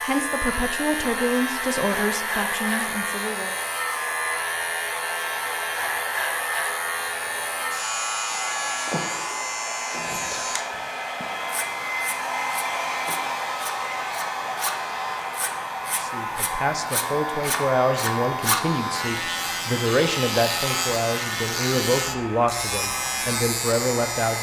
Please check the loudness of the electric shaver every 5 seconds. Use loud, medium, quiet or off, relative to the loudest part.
loud, loud, medium, loud, loud.